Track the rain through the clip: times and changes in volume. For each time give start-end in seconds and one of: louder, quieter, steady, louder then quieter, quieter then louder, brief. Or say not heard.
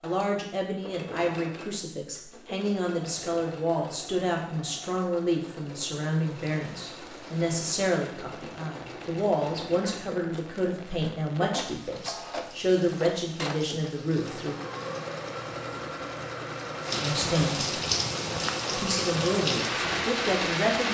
6.3-20.8 louder.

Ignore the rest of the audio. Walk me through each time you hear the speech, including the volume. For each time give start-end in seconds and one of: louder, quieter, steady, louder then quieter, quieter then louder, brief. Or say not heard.
0.0-14.6 steady
17.0-17.8 brief
18.8-20.8 brief.